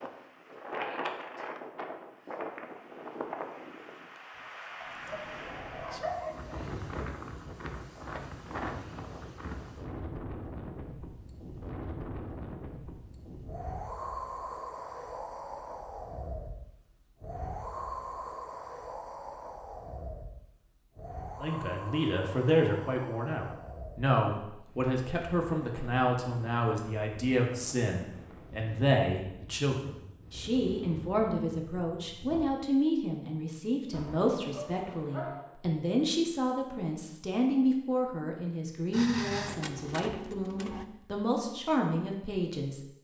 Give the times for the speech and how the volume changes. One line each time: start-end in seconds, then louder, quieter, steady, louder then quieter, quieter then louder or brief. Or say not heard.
21.4-42.8 steady.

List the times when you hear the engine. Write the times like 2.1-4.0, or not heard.
38.9-40.9.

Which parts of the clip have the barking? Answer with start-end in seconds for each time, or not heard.
4.8-6.7, 33.9-35.5.